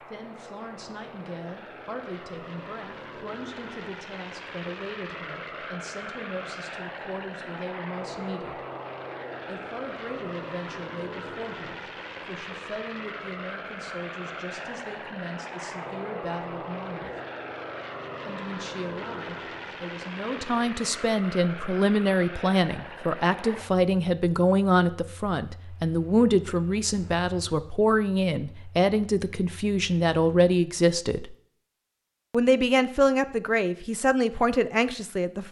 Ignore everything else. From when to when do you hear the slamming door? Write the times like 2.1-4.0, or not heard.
not heard.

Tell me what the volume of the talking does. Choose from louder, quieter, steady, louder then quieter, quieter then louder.
louder.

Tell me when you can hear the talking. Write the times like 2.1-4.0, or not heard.
0.0-8.7, 9.4-17.1, 18.2-31.4, 32.3-35.4.